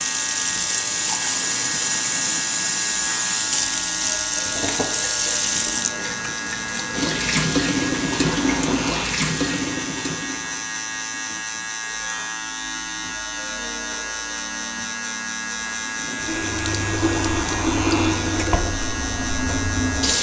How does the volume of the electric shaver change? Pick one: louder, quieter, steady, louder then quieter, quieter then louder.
steady.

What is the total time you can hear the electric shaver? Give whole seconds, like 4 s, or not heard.
20 s.